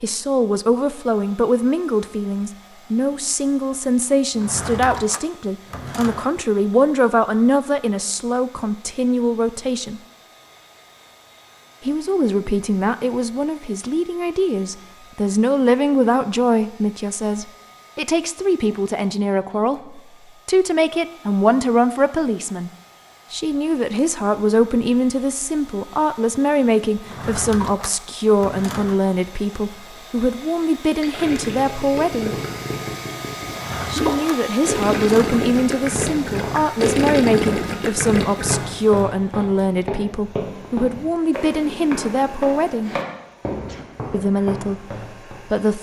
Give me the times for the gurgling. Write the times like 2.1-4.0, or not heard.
31.0-38.6.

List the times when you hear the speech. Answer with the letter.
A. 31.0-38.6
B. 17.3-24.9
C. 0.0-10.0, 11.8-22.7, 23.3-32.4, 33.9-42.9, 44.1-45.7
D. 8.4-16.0
C.